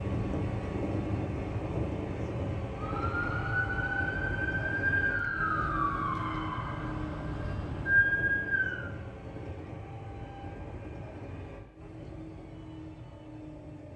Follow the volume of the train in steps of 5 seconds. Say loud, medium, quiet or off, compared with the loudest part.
loud, medium, medium.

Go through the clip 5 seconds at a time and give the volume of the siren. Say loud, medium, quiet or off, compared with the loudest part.
loud, loud, off.